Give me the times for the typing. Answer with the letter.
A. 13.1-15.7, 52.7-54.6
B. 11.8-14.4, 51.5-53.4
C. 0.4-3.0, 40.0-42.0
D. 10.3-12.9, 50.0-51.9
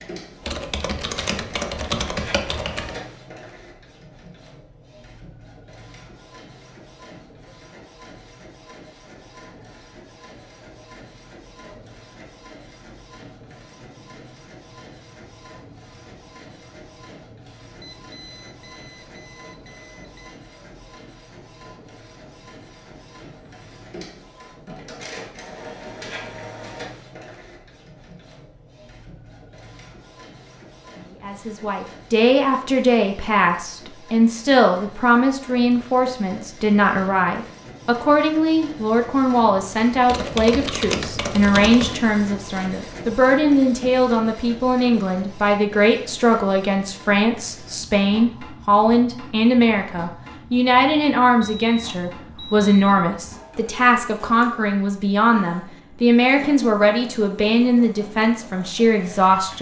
C.